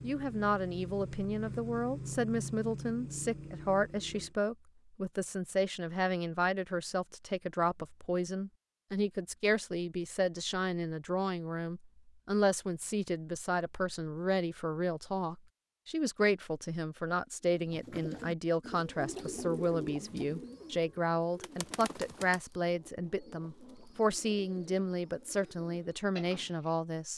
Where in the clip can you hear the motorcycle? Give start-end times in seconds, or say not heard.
0.0-4.3.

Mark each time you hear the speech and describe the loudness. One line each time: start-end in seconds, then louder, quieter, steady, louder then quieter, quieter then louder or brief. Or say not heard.
0.0-27.1 steady.